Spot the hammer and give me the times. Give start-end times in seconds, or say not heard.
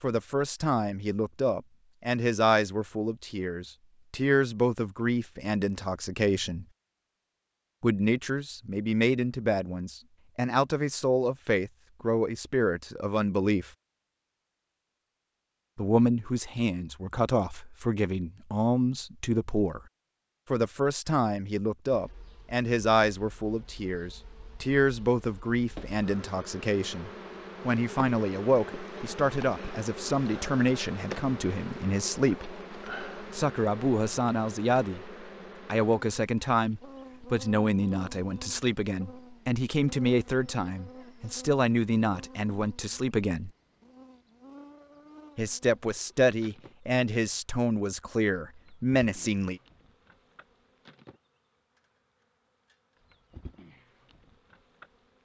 not heard.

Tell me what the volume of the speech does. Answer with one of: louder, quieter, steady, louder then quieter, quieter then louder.
steady.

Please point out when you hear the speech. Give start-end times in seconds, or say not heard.
0.0-6.7, 7.8-13.7, 15.8-19.8, 20.5-32.5, 33.3-43.5, 45.4-49.6.